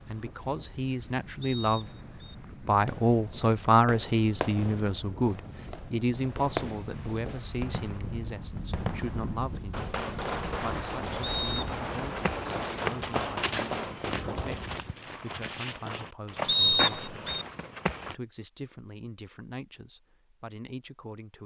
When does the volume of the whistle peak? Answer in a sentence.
The loudest moment of the whistle is at 17 seconds.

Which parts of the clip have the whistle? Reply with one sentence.
You can hear the whistle from 1.4 to 2.4 s, from 11.2 to 11.7 s and from 16.4 to 17.4 s.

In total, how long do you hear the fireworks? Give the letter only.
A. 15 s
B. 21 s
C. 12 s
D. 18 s
C.